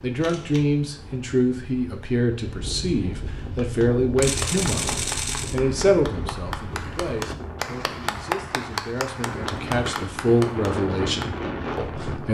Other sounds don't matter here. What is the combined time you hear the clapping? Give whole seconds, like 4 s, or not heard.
8 s.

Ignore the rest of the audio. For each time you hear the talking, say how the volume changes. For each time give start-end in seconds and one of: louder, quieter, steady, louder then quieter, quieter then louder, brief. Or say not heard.
0.0-12.2 quieter then louder.